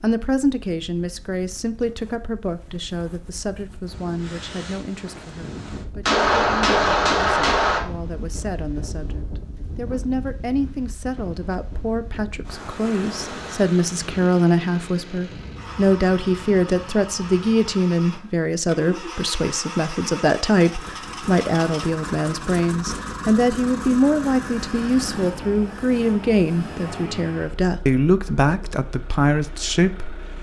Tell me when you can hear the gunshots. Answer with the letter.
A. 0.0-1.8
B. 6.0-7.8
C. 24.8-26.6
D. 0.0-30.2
B.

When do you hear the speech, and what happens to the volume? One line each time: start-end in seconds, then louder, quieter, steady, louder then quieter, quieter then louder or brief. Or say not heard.
0.0-30.2 louder.